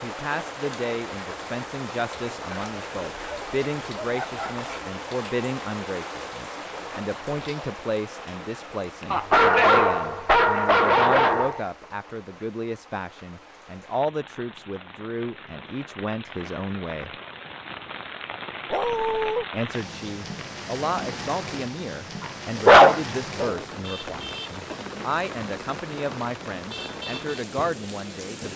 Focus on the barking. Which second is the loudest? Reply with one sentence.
The volume of the barking peaks at 23 seconds.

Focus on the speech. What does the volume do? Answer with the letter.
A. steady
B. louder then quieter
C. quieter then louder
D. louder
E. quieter
A.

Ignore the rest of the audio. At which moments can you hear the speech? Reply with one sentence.
The speech can be heard from 0.0 to 17.1 s and from 19.5 to 28.5 s.